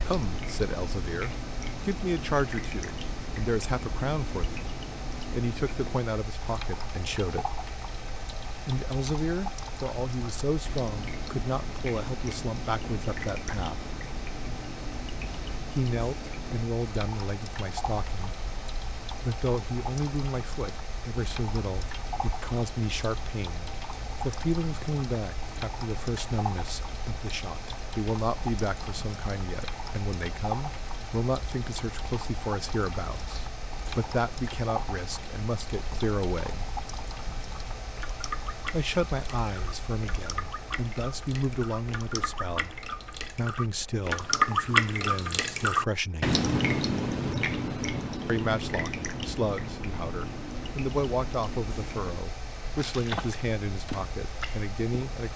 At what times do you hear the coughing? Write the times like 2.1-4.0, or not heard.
not heard.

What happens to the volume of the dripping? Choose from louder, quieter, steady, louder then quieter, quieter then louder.
louder.